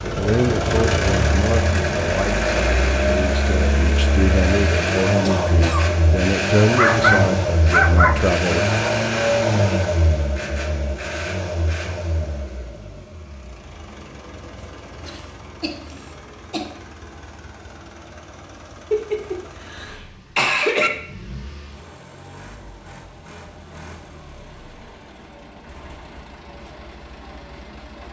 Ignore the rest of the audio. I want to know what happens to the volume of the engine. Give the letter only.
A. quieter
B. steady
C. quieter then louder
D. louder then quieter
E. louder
A.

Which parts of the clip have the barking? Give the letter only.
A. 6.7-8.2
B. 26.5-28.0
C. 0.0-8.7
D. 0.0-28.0
A.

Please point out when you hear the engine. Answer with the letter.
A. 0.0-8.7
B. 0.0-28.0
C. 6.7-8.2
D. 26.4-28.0
B.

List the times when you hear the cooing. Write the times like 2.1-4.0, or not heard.
not heard.